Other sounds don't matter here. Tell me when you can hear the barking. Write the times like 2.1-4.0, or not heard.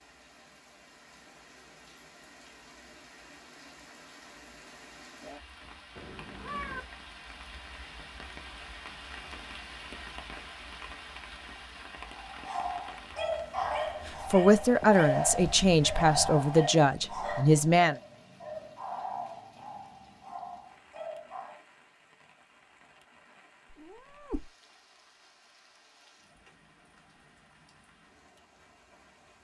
12.1-21.6.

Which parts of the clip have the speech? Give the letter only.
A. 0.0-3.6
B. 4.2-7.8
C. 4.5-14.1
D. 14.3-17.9
D.